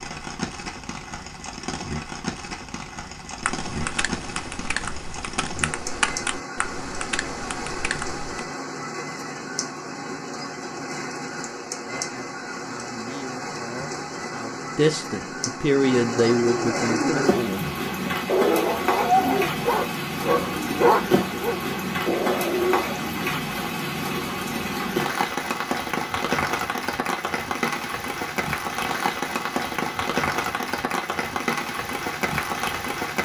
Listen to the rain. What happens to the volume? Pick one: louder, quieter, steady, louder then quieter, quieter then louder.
louder.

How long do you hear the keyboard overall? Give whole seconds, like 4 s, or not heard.
5 s.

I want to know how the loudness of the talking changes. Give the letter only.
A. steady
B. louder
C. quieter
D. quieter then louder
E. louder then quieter
B.